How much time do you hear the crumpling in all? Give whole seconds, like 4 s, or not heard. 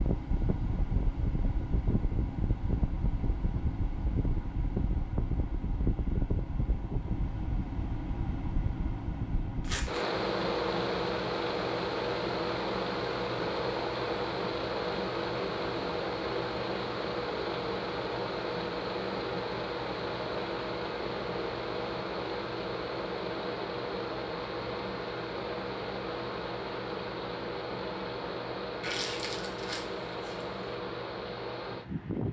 2 s.